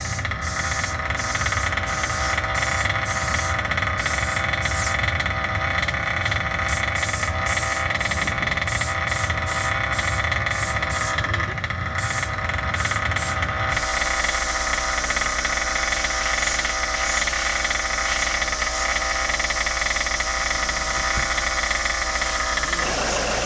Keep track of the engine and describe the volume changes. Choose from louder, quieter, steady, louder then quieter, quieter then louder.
steady.